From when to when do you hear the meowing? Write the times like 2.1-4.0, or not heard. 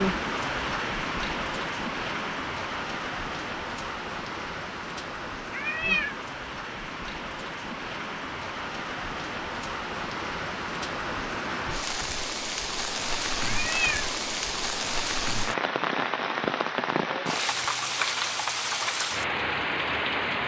5.5-6.2, 13.4-14.1.